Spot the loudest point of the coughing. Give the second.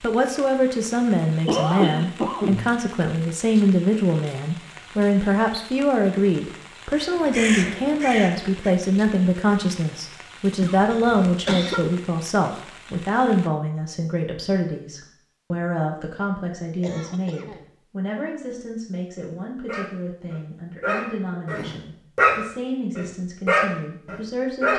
2 s.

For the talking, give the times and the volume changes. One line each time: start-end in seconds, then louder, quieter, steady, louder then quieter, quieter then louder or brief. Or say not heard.
0.0-24.7 quieter.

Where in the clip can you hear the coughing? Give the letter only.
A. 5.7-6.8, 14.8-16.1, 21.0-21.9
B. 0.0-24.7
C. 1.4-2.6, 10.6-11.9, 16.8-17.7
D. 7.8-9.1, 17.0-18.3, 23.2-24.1
C.